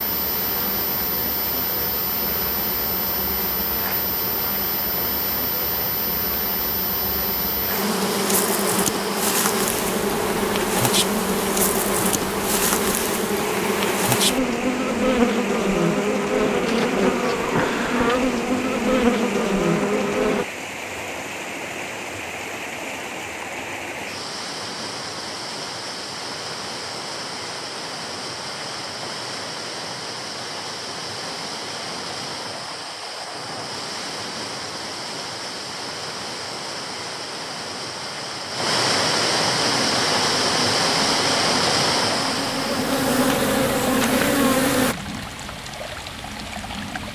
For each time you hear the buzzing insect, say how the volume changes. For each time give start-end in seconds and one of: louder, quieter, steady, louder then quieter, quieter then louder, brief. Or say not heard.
0.0-20.4 louder
39.6-45.0 louder.